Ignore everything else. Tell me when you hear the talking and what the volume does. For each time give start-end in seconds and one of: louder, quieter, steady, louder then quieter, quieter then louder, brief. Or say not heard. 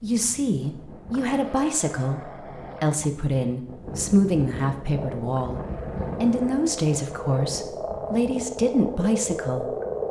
0.0-9.8 steady.